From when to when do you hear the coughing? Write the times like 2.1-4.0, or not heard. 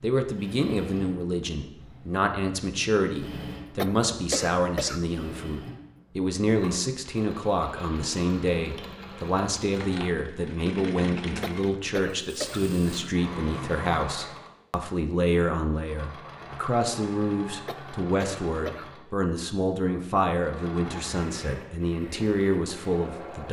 3.8-5.2, 11.4-12.8, 17.6-19.1.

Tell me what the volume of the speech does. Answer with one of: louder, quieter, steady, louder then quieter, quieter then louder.
steady.